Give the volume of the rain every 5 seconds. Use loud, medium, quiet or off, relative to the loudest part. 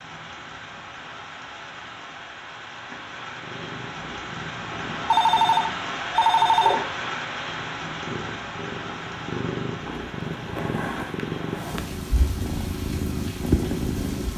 medium, loud, medium.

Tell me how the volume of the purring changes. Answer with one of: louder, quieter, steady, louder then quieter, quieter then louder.
louder.